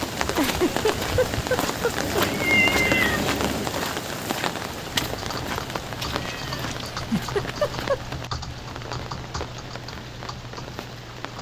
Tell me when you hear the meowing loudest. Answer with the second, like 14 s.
3 s.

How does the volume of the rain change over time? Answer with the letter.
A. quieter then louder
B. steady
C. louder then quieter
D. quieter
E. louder
D.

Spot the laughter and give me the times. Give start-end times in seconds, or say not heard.
0.3-2.2, 7.0-8.0.